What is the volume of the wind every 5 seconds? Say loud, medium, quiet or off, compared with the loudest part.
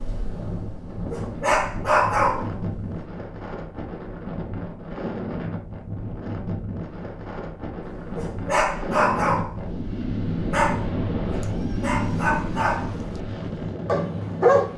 medium, loud, loud.